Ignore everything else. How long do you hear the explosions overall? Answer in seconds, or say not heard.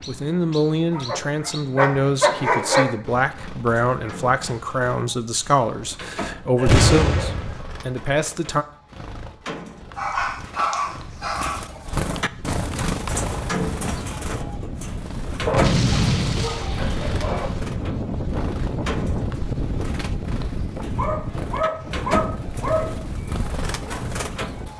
3 s.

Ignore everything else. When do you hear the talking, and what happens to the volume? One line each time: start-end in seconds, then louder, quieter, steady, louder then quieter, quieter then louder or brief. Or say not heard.
0.1-8.7 steady.